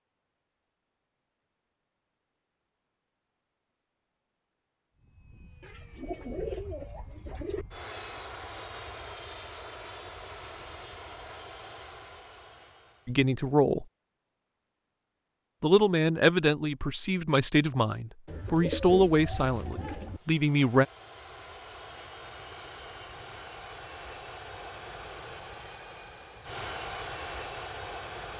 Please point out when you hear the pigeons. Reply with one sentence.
You can hear the pigeons from 5.6 to 7.7 s and from 18.2 to 20.2 s.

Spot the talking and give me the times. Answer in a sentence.
The talking can be heard from 13.1 to 13.8 s and from 15.6 to 20.9 s.